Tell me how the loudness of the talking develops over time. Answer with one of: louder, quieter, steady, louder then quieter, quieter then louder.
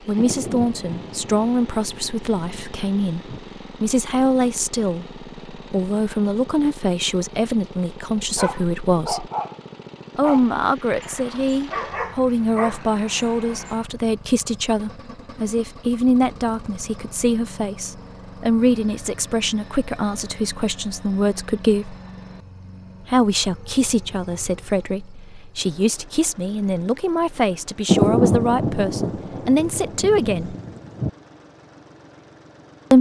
steady.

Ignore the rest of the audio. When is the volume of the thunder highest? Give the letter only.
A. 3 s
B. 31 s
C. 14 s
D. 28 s
D.